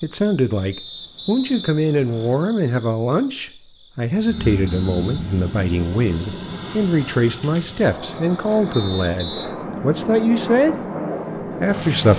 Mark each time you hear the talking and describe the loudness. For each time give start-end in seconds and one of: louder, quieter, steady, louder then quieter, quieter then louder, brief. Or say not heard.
0.0-10.8 steady
11.6-12.1 brief.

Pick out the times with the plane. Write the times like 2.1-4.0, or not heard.
4.2-12.1.